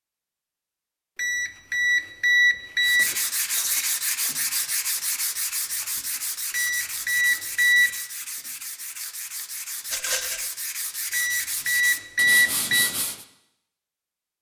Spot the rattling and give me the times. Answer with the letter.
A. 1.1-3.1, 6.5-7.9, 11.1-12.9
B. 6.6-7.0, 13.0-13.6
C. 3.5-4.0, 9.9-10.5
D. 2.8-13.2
C.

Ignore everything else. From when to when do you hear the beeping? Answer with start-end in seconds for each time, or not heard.
1.1-3.1, 6.5-7.9, 11.1-12.9.